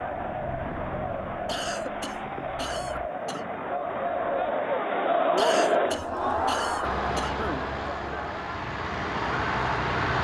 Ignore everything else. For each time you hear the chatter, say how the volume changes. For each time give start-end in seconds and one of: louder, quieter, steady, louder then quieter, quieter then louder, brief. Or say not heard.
0.0-10.2 louder then quieter.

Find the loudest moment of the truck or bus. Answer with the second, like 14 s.
10 s.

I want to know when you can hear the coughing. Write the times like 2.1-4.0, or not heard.
1.4-3.5, 5.3-7.7.